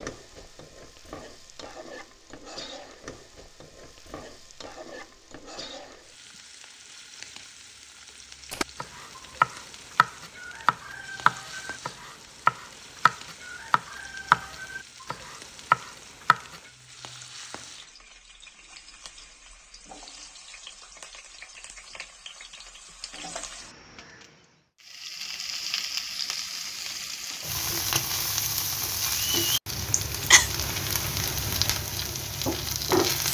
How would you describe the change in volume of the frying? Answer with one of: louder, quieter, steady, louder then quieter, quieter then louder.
louder.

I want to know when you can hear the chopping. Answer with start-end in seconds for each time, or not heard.
8.5-16.6.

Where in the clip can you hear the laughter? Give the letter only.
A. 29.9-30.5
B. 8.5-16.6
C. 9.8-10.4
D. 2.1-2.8
A.